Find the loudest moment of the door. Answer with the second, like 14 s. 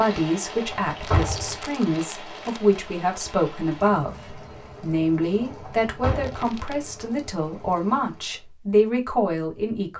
1 s.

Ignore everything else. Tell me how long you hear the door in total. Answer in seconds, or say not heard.
2 s.